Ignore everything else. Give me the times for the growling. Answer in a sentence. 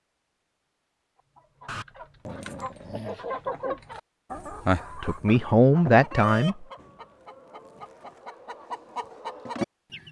You can hear the growling from 1.6 to 3.7 s.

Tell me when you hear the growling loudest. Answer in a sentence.
The loudest moment of the growling is at 2 seconds.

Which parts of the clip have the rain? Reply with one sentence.
The rain can't be heard in this clip.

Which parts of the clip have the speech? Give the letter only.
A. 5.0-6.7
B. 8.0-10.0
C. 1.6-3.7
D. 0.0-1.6
A.